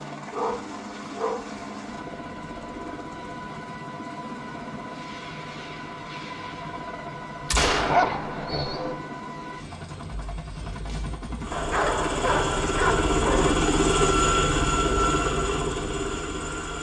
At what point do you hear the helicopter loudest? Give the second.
14 s.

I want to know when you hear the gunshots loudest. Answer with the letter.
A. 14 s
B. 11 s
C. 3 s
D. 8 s
D.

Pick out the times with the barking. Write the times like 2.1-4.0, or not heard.
0.3-1.6, 7.7-8.9, 11.5-13.6.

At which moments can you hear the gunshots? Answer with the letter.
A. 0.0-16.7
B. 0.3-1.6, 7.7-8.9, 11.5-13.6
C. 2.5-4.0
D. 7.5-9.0
D.